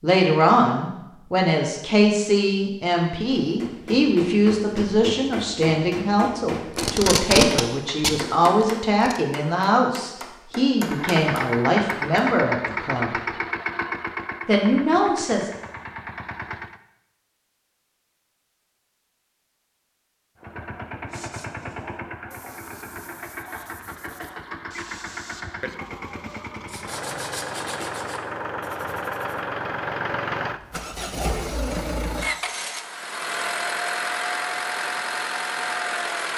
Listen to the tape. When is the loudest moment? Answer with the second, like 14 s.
7 s.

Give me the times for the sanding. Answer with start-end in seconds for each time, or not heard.
21.1-29.4.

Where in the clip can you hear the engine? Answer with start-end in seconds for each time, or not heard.
10.8-16.8, 20.4-36.3.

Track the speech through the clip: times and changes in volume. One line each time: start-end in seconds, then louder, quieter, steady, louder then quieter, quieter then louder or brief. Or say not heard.
0.0-13.2 steady
14.4-15.5 brief.